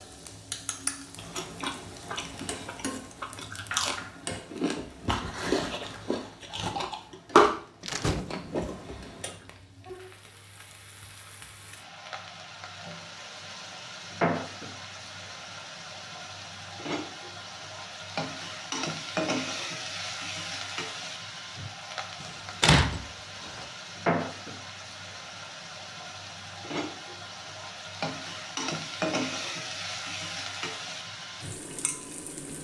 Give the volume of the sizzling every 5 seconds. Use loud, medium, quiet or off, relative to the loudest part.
medium, quiet, loud, loud, loud, loud, loud.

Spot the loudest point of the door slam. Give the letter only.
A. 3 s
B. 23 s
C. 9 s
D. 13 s
B.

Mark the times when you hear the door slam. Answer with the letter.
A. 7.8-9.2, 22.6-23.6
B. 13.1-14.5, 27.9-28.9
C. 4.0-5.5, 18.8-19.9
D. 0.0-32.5
A.